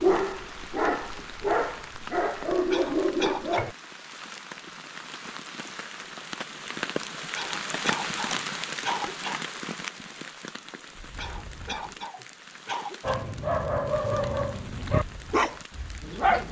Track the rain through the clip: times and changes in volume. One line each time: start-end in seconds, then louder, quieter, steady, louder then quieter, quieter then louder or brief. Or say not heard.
0.0-16.4 louder then quieter.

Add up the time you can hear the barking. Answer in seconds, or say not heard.
7 s.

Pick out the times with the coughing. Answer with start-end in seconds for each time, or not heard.
2.7-3.7, 7.3-9.4, 11.2-13.2.